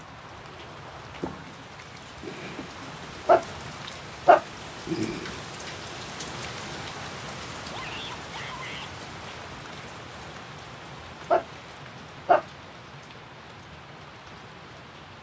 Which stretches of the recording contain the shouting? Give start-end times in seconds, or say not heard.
7.7-8.9.